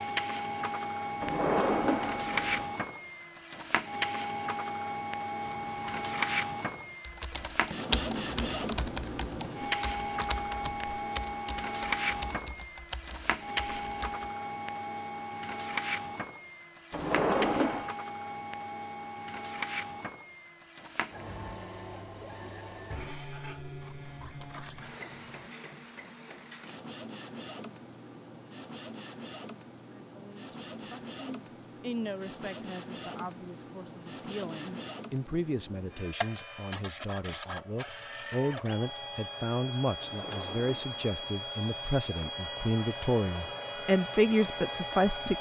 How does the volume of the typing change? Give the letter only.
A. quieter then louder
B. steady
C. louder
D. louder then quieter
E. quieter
E.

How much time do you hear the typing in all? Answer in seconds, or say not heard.
7 s.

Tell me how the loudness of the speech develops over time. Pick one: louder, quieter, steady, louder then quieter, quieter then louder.
louder.